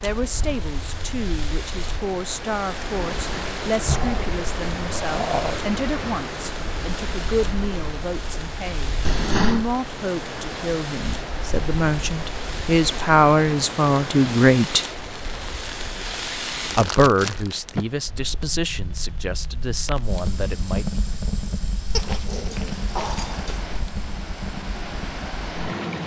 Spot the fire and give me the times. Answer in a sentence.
You can hear the fire from 0.0 to 26.0 s.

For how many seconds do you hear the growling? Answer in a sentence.
You can hear the growling for 5 seconds altogether.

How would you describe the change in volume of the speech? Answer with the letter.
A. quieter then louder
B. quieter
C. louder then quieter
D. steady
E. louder
C.